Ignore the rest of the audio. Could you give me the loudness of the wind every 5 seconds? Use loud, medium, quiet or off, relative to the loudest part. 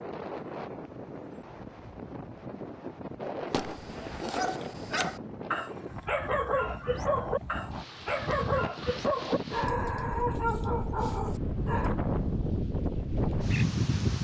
medium, medium, loud.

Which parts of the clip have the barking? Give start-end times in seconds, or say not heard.
3.5-11.9.